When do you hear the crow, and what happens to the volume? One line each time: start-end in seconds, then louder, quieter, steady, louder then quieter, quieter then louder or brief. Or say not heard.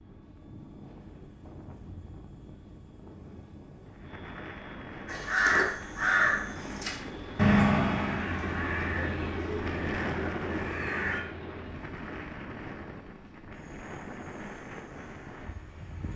5.0-11.2 quieter.